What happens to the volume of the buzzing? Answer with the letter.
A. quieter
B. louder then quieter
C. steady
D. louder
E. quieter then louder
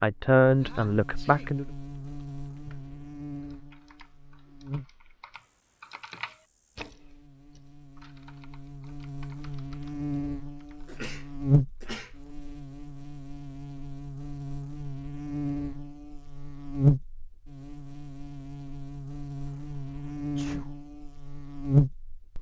E.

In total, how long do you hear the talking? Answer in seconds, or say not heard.
2 s.